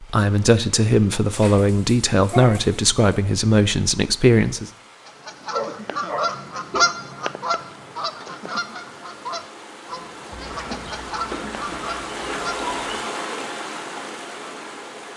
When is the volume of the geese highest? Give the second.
7 s.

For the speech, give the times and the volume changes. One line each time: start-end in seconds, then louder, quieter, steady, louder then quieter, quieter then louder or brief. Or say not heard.
0.0-4.7 steady.